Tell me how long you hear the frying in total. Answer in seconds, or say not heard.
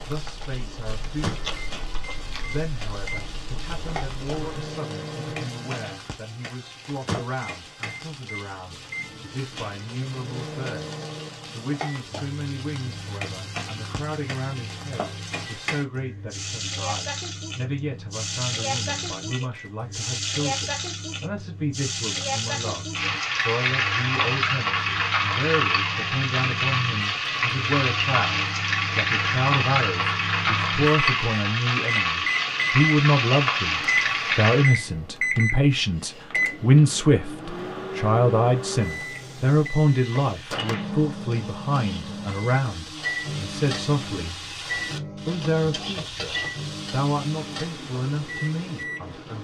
44 s.